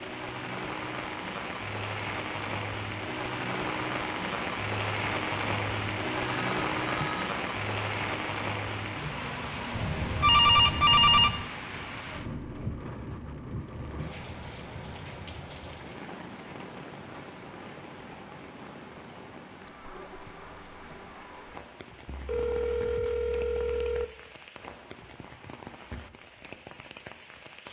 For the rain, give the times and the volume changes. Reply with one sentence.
You can hear the rain from 0.0 to 27.6 s, getting quieter.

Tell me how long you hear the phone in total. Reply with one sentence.
The phone can be heard for 5 seconds in total.